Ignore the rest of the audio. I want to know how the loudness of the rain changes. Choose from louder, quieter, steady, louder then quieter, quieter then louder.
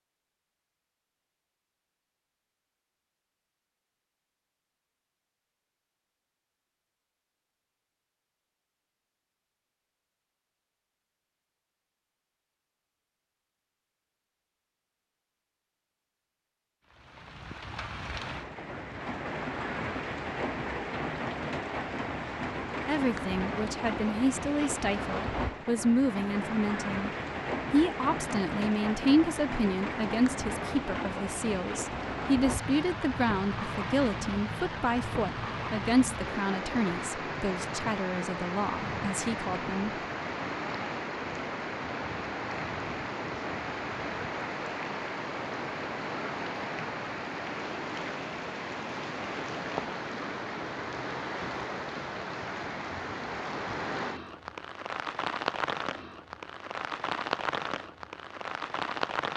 steady.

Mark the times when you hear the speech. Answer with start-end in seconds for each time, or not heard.
22.9-27.1, 27.7-39.9.